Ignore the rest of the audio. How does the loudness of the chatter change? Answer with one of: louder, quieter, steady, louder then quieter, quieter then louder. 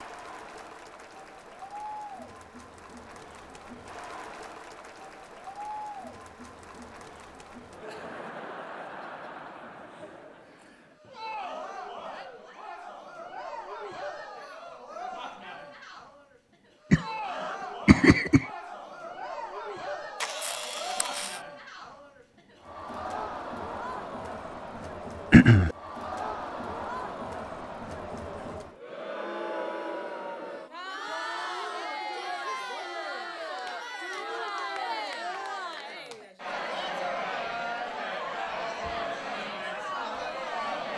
louder.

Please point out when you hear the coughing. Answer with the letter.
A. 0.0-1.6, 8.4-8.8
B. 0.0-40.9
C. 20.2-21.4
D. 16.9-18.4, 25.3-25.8
D.